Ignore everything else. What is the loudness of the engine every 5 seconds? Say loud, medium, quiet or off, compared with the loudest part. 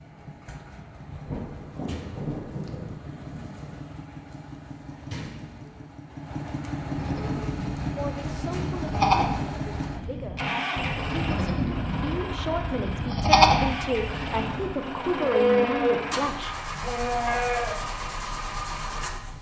medium, loud, loud, loud.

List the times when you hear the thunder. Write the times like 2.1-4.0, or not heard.
1.2-3.8.